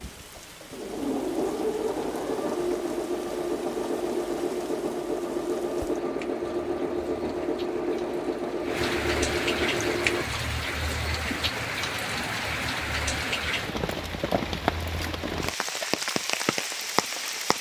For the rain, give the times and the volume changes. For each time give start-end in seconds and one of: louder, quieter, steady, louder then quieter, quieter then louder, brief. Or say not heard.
0.0-17.5 louder.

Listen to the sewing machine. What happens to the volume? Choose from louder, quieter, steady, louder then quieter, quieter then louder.
steady.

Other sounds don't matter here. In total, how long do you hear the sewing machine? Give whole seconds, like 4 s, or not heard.
10 s.